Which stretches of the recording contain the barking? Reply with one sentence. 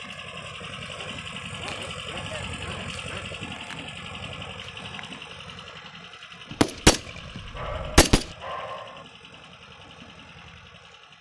You can hear the barking from 0.3 to 3.3 s and from 7.5 to 9.1 s.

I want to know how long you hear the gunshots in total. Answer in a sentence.
The gunshots can be heard for 2 seconds in total.